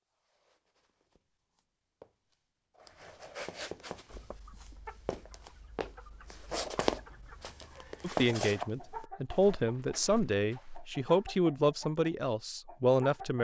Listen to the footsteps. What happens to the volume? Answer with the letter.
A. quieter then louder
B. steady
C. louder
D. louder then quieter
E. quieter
D.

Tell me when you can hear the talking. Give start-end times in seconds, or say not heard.
8.0-13.3.